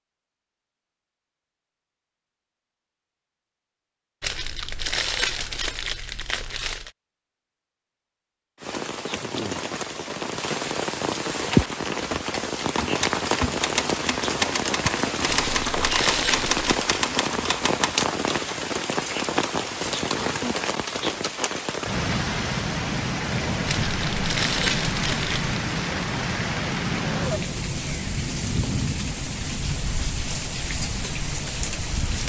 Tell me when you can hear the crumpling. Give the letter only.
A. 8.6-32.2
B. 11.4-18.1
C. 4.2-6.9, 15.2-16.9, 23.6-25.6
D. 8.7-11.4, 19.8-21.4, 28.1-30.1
C.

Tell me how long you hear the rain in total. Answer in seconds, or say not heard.
24 s.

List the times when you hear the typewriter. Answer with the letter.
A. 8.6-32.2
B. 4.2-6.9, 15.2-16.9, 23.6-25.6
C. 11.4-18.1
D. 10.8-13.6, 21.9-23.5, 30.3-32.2
C.